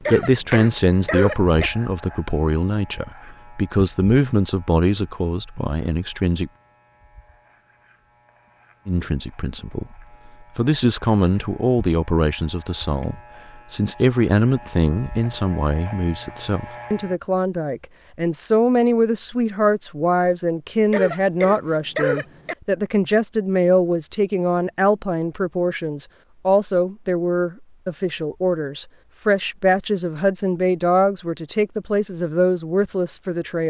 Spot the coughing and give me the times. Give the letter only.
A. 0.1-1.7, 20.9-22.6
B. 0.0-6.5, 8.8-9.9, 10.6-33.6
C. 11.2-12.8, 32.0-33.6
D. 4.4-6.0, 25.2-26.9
A.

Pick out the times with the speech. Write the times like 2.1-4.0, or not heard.
0.0-6.5, 8.8-9.9, 10.6-33.6.